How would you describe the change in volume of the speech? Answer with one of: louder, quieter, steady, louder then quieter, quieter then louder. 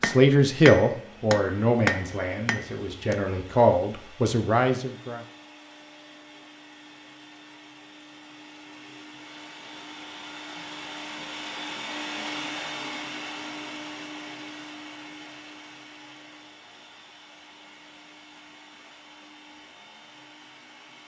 quieter then louder.